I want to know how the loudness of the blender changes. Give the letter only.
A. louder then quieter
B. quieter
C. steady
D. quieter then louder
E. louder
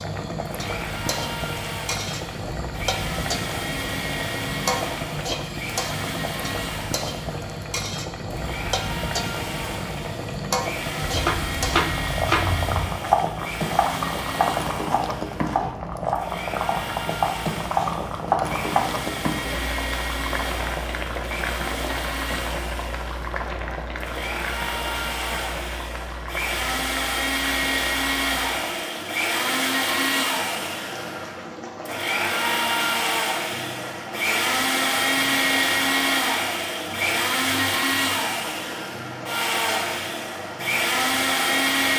E.